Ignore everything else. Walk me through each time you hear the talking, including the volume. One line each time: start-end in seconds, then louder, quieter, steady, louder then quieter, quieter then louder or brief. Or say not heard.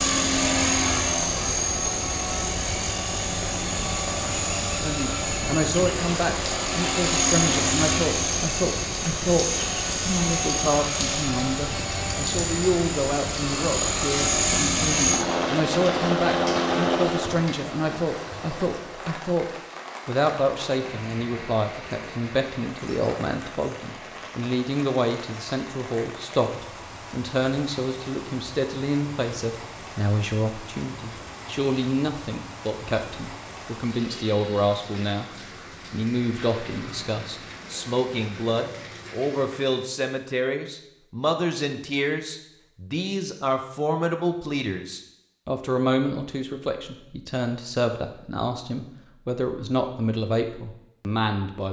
4.8-35.3 steady
35.9-51.6 steady.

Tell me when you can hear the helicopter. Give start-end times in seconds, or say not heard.
0.0-17.6.